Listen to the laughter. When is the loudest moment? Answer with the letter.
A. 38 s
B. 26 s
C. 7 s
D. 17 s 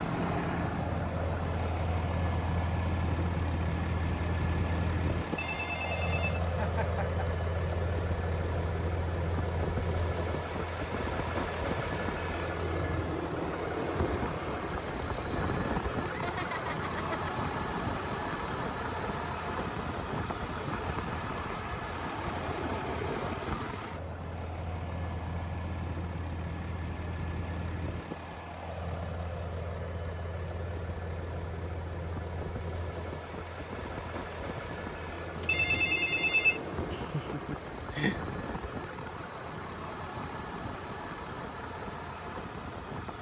A.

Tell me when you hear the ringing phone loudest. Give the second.
36 s.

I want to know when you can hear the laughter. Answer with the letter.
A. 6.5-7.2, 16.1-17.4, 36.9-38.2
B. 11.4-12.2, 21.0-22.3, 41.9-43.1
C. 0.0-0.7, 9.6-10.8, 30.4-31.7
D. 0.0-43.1
A.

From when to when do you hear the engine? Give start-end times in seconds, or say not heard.
0.0-43.1.